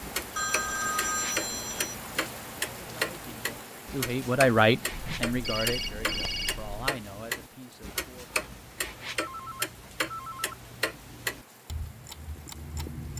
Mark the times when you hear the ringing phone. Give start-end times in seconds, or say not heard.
0.3-1.9, 4.9-6.9, 9.2-10.6.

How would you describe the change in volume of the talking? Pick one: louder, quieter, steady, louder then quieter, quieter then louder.
louder then quieter.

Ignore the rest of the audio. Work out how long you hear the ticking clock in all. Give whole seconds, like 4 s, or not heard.
13 s.